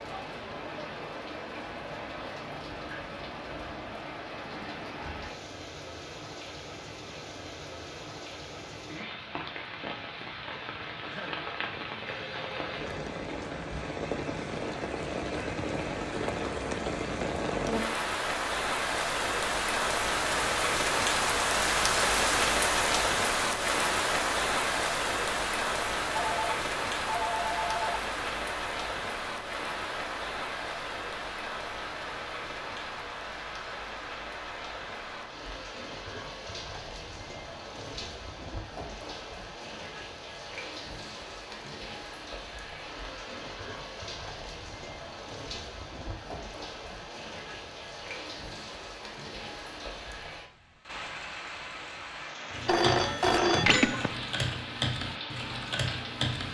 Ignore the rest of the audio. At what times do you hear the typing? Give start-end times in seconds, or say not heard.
52.5-56.4.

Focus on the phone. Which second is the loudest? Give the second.
54 s.